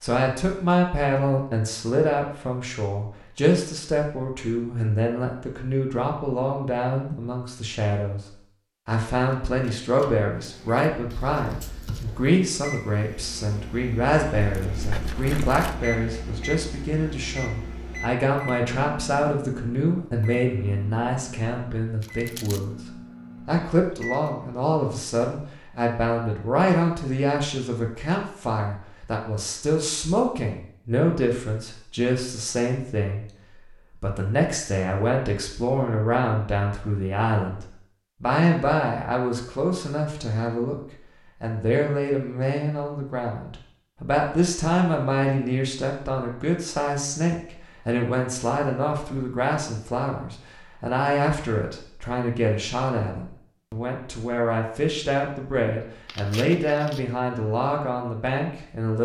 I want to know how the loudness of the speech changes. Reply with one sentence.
The volume of the speech stays about the same.